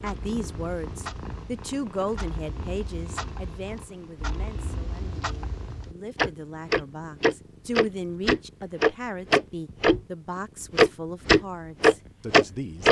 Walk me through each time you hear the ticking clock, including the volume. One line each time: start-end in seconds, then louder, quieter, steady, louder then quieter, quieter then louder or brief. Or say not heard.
0.0-10.0 louder
10.8-12.8 brief.